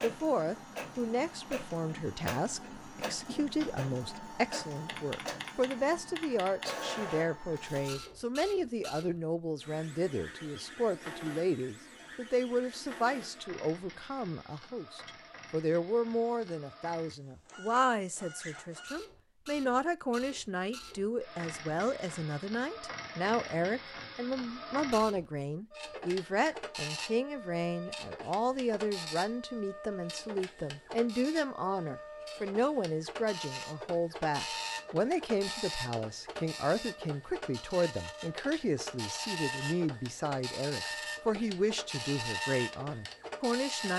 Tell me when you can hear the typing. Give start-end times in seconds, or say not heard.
4.8-6.8.